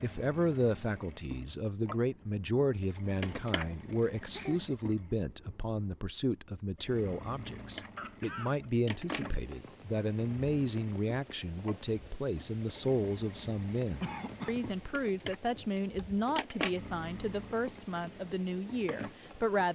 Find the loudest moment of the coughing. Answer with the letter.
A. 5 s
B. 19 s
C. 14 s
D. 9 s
C.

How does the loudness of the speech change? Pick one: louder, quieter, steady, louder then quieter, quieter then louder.
steady.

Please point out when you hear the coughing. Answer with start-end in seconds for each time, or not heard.
3.9-4.6, 8.0-8.7, 14.0-14.7.